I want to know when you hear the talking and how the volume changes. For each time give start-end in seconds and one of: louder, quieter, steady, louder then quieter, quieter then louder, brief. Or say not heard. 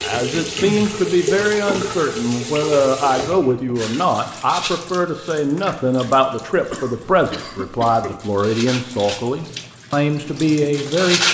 0.0-11.2 steady.